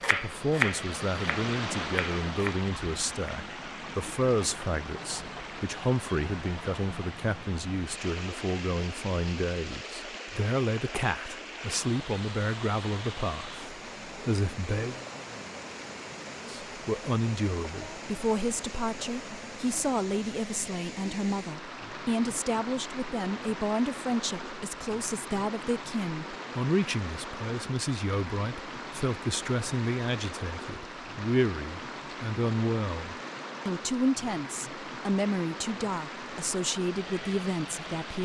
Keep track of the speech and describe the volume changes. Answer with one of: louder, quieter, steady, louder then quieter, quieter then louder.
steady.